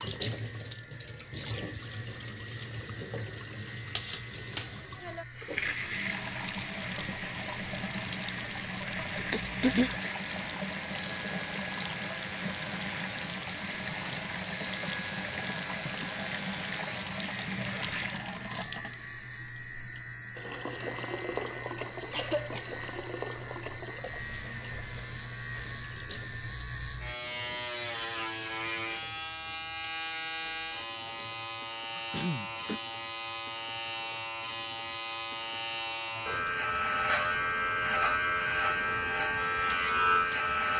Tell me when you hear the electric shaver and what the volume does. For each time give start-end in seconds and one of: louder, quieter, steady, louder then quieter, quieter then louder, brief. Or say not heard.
0.0-40.7 louder.